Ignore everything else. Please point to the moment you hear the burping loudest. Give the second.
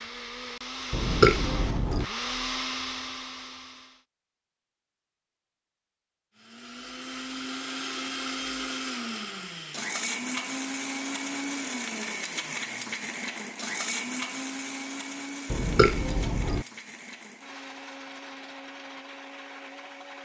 1 s.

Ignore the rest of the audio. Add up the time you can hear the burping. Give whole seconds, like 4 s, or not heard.
2 s.